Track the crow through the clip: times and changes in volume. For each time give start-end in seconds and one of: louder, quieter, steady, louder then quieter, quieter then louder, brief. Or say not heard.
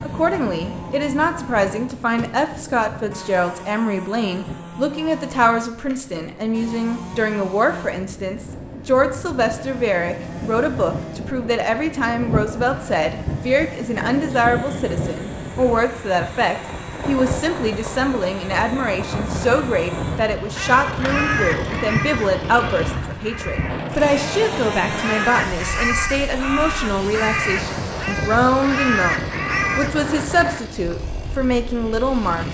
20.4-30.1 quieter then louder.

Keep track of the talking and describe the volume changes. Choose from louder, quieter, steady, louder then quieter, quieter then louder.
steady.